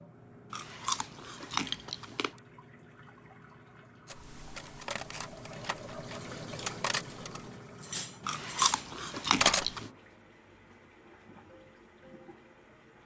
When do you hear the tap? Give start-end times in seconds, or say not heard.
0.0-13.0.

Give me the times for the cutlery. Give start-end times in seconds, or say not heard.
4.1-9.7.